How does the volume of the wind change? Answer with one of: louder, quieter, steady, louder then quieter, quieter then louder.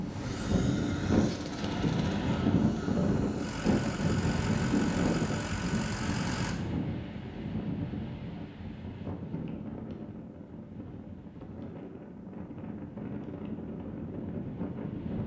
quieter.